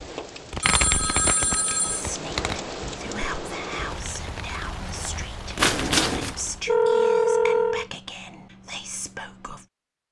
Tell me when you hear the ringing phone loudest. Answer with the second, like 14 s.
7 s.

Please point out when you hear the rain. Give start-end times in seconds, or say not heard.
0.0-6.8.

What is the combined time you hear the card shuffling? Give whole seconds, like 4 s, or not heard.
3 s.